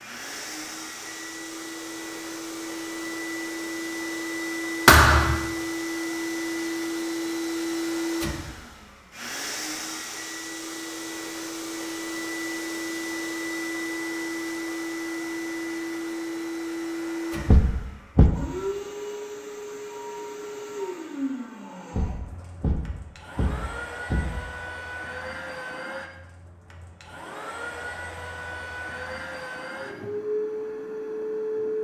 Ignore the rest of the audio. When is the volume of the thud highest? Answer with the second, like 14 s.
5 s.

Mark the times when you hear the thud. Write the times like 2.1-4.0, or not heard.
4.8-5.5, 17.4-18.3, 21.9-24.4.